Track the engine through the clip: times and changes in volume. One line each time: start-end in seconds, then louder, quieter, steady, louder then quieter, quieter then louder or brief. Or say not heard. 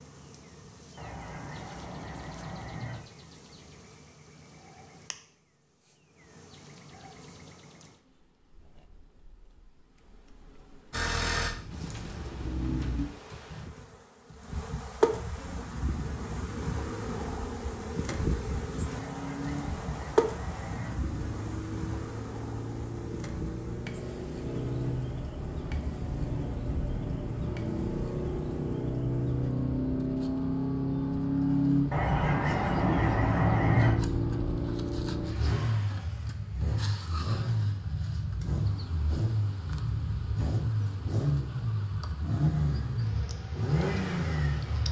10.9-13.1 brief
15.4-44.8 louder.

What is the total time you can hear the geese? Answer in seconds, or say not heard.
6 s.